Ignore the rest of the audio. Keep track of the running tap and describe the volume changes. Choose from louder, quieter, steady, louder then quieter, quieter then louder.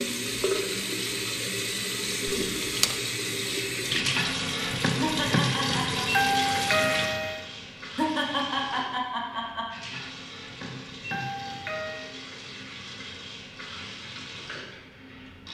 quieter.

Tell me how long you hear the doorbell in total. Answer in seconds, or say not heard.
3 s.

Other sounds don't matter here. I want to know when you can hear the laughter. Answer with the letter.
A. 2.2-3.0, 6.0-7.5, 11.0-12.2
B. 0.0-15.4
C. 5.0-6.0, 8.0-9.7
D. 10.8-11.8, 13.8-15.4
C.